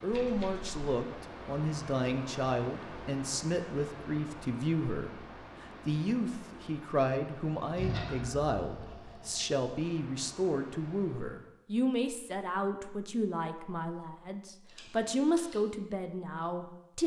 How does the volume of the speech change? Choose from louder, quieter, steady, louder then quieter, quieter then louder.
steady.